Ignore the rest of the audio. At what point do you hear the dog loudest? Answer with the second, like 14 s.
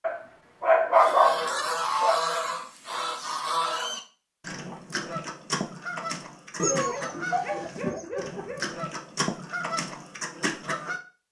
1 s.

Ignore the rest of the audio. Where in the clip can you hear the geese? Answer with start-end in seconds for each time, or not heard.
0.9-11.0.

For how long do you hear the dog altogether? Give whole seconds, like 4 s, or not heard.
4 s.